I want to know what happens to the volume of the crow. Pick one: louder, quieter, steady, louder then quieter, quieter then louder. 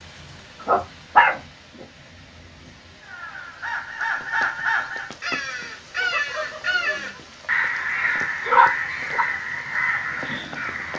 steady.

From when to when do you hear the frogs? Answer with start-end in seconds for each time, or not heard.
not heard.